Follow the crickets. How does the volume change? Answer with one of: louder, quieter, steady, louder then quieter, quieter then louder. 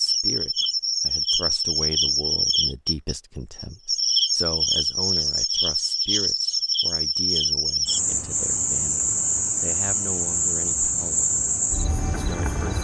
steady.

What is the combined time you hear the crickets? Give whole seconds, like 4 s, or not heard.
13 s.